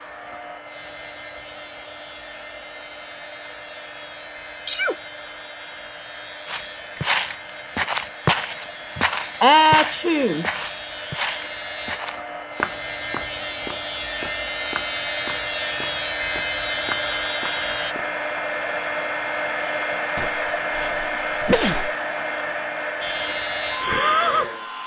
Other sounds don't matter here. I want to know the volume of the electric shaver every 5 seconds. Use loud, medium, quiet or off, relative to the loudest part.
quiet, quiet, medium, loud, loud.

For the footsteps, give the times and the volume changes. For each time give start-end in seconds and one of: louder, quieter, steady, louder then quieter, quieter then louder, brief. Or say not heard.
6.5-18.1 quieter.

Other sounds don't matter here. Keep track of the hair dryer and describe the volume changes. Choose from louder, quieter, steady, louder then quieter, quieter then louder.
louder.